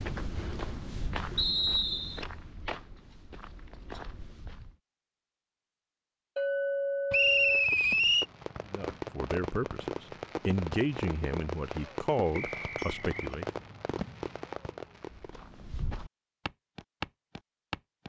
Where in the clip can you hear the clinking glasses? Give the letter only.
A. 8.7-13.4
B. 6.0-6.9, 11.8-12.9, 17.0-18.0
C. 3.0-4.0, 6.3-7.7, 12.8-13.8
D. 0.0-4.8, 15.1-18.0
C.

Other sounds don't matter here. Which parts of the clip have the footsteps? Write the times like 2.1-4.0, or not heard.
0.0-4.8, 15.1-18.0.